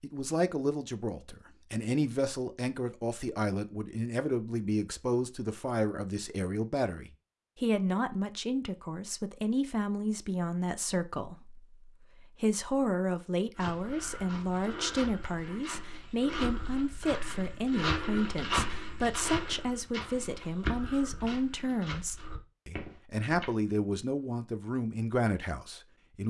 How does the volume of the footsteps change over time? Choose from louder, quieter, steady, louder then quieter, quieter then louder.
louder then quieter.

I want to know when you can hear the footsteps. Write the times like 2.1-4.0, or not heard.
13.6-23.5.